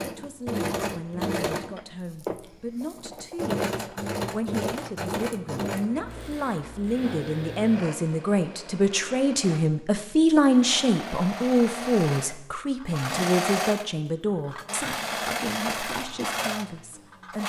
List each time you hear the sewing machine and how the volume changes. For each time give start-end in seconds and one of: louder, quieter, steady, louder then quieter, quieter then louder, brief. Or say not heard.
0.0-17.4 quieter then louder.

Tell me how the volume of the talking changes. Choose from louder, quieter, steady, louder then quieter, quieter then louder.
louder then quieter.